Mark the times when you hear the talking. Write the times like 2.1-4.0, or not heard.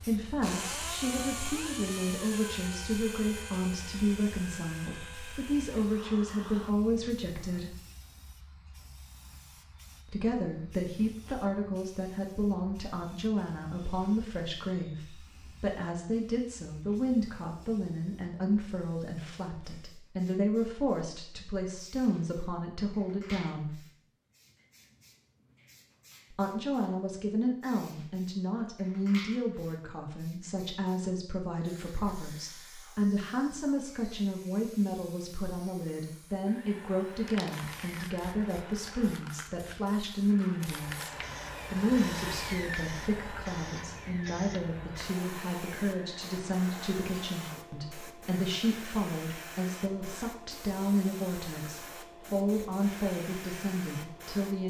0.0-7.8, 10.1-23.9, 26.3-54.6.